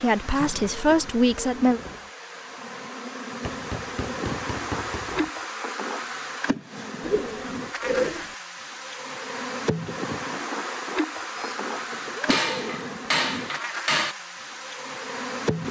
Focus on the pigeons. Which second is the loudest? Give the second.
8 s.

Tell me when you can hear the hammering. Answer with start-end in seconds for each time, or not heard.
3.4-5.3, 12.3-14.2.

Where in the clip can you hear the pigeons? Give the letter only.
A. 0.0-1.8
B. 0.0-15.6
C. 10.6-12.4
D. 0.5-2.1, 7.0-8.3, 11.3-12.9
D.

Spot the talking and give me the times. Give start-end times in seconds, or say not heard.
0.0-1.8.